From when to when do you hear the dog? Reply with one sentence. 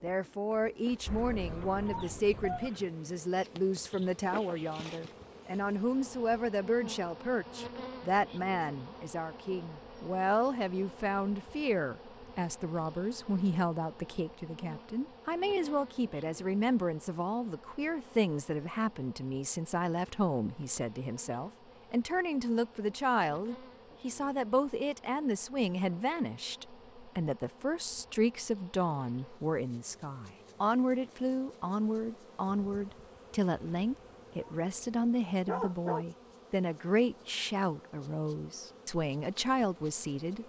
You can hear the dog from 1.1 to 2.9 s and from 33.8 to 36.0 s.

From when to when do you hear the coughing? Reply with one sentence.
You can't hear the coughing here.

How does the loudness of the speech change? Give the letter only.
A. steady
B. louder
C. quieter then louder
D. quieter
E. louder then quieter
A.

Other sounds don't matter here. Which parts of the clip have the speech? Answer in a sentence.
The speech can be heard from 0.0 to 40.4 s.